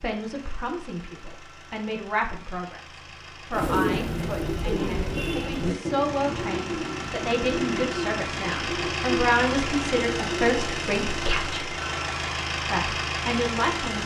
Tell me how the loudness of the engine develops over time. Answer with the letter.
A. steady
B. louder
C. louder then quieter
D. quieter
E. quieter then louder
B.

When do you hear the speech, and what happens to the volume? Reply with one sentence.
The speech can be heard from 0.0 to 11.7 s, getting louder; and briefly from 12.7 to 14.0 s.